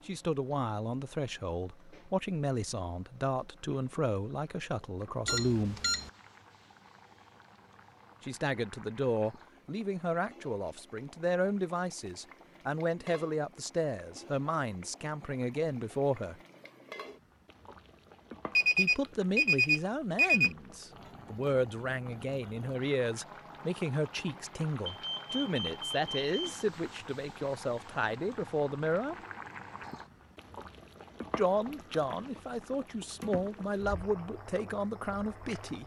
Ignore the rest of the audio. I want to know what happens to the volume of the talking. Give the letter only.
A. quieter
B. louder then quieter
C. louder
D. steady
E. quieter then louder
D.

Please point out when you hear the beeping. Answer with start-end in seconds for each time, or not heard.
5.2-6.1, 18.6-20.5, 24.9-26.6.